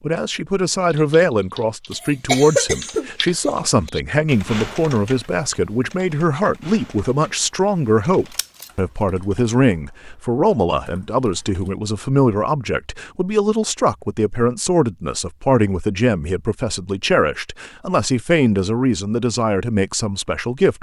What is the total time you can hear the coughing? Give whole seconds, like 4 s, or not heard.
2 s.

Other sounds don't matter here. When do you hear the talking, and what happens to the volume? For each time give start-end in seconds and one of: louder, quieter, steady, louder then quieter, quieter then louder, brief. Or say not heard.
0.0-20.7 steady.